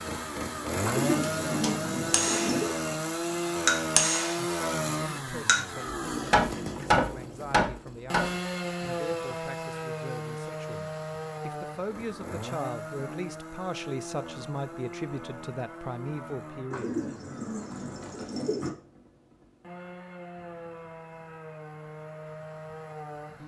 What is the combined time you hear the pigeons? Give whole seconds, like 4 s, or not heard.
4 s.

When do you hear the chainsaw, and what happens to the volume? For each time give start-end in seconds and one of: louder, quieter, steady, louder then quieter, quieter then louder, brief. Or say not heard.
0.0-23.4 quieter.